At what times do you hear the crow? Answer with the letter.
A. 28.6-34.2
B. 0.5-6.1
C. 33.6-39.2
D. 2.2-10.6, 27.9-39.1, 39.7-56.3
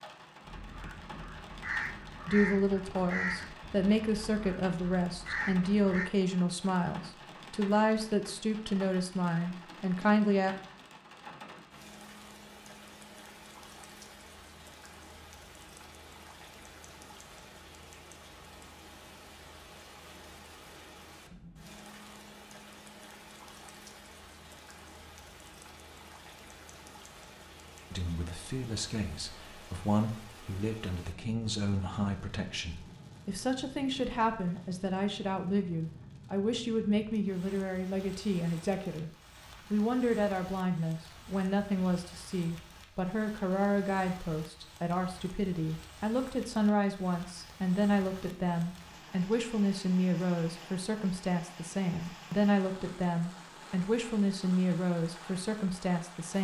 B.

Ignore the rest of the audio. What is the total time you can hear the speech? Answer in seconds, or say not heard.
36 s.